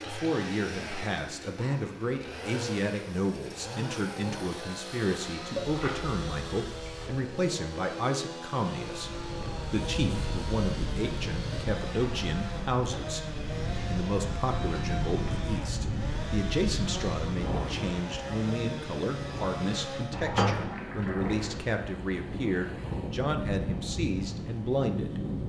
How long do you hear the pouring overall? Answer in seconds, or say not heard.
3 s.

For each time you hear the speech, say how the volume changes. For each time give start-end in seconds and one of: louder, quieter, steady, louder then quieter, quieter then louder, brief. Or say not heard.
0.1-25.2 steady.